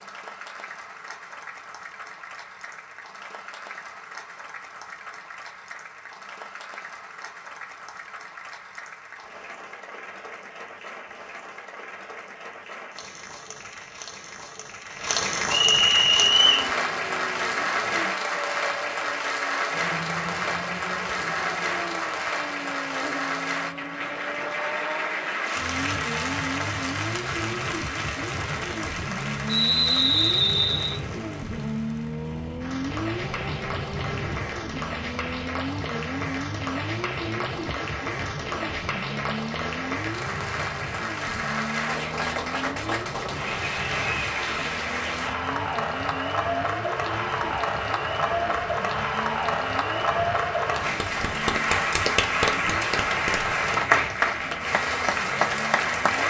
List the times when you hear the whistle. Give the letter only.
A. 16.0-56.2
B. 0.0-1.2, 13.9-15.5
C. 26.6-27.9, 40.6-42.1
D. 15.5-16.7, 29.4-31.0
D.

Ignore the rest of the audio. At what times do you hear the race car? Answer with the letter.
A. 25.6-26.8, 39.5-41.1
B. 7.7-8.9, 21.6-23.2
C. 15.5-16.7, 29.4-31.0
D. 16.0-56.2
D.